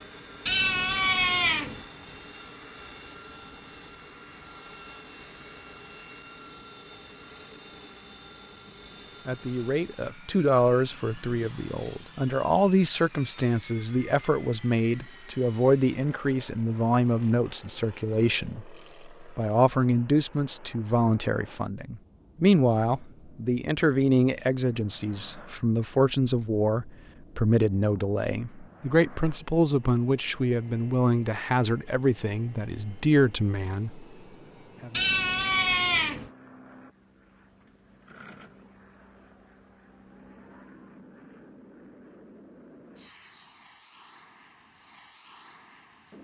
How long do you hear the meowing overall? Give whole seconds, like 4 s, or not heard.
3 s.